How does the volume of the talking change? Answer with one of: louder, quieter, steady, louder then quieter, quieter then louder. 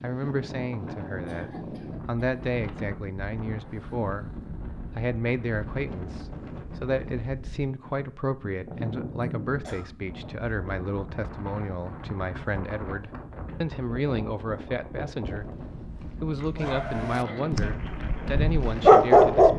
steady.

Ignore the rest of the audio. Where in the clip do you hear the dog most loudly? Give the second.
19 s.